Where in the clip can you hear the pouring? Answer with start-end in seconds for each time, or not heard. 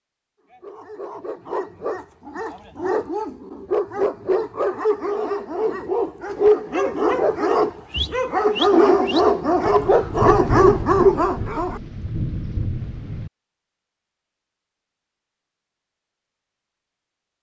not heard.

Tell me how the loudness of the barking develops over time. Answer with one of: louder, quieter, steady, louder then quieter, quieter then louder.
louder.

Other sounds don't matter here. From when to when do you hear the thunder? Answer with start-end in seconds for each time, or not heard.
9.7-13.3.